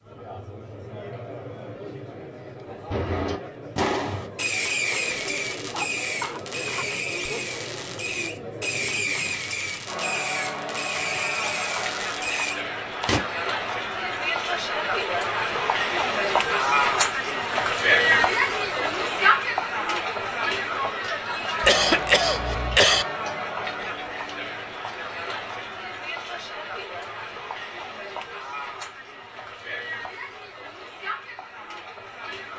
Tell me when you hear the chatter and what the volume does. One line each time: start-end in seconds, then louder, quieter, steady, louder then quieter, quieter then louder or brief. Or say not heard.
0.0-32.5 louder then quieter.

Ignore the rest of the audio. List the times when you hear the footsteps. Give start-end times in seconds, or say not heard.
not heard.